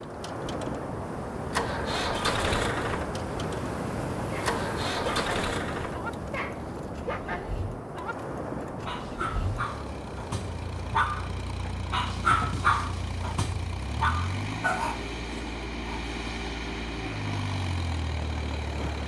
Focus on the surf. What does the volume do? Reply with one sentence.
The loudness of the surf goes down.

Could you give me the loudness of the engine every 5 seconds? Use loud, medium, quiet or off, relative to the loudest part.
loud, medium, medium, loud.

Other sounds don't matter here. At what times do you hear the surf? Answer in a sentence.
The surf can be heard from 0.0 to 19.0 s.